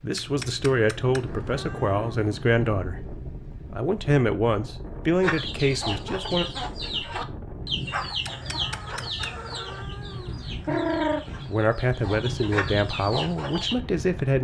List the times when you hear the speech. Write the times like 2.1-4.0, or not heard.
0.0-6.5, 11.4-14.3.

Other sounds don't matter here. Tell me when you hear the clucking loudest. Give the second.
11 s.